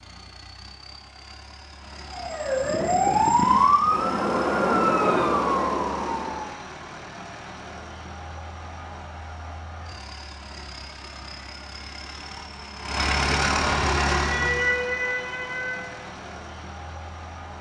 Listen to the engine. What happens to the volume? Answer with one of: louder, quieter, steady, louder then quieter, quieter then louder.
louder.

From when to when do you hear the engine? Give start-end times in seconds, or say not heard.
0.0-17.5.